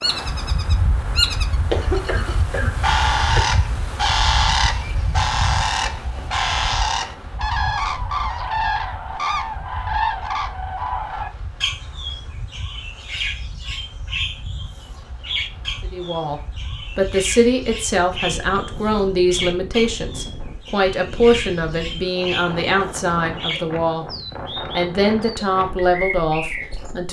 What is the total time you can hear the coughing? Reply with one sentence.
The coughing can be heard for 2 seconds in total.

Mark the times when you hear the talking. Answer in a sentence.
You can hear the talking from 15.8 to 24.1 s and from 24.8 to 27.0 s.